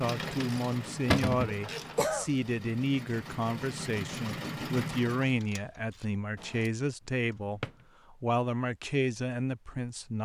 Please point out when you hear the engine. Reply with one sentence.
The engine can be heard from 0.0 to 5.4 s.